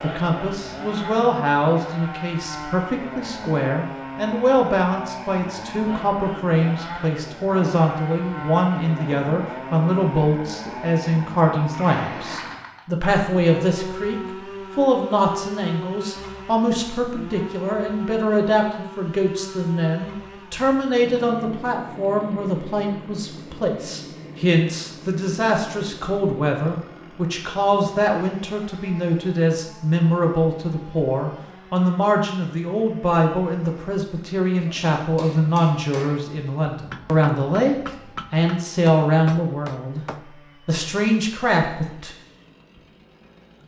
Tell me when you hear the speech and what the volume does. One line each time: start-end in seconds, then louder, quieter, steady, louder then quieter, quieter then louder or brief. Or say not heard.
0.0-40.0 steady
40.6-42.1 brief.